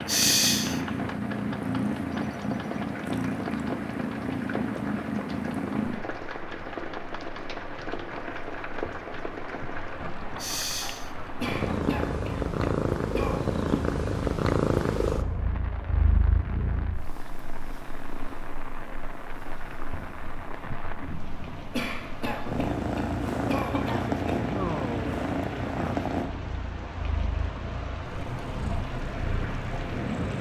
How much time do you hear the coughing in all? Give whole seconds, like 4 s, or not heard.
5 s.